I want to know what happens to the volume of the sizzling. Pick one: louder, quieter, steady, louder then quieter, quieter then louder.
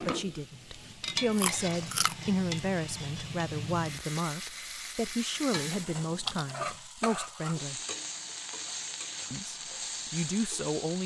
steady.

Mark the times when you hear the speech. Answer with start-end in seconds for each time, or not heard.
0.0-7.8, 9.3-11.0.